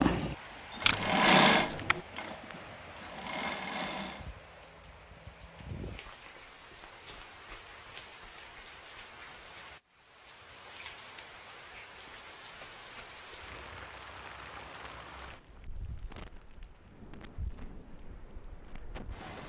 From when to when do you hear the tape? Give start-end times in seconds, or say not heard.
0.8-2.0.